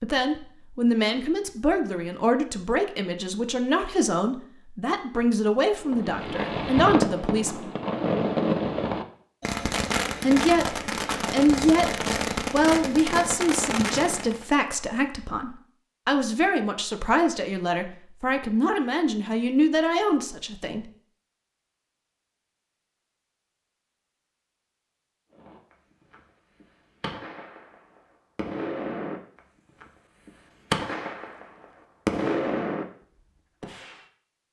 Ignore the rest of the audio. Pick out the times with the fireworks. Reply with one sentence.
You can hear the fireworks from 5.8 to 14.4 s, from 25.3 to 32.9 s and from 33.6 to 34.0 s.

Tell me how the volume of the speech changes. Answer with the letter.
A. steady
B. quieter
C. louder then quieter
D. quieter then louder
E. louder
A.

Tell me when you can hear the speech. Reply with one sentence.
You can hear the speech from 0.0 to 7.7 s and from 10.2 to 20.9 s.